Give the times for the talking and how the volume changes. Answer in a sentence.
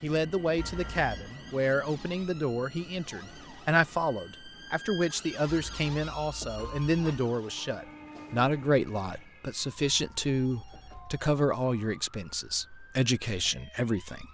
The talking can be heard from 0.0 to 14.2 s, at a steady volume.